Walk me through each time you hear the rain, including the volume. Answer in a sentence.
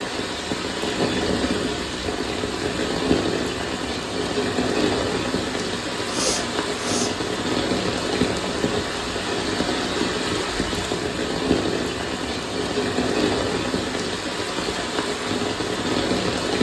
You can hear the rain from 0.0 to 16.5 s, at a steady volume.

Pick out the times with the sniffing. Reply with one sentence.
The sniffing can be heard from 5.7 to 7.2 s.